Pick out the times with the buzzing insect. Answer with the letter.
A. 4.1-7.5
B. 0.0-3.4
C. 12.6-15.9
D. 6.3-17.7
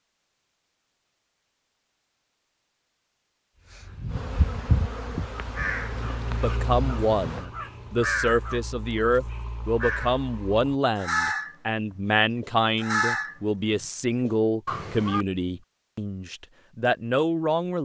A.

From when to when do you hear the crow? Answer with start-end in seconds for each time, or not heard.
3.6-15.2.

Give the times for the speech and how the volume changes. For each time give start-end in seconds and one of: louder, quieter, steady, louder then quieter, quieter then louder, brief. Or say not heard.
6.3-17.7 steady.